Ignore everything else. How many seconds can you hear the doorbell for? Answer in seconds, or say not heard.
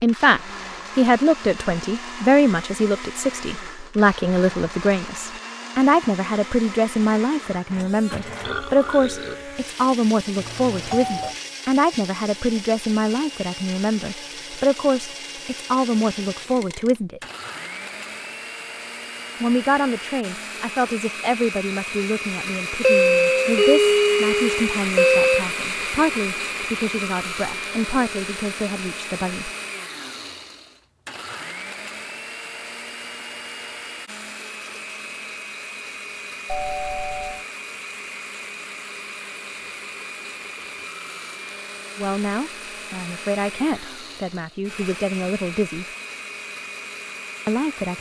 5 s.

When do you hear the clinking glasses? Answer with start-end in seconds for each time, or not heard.
not heard.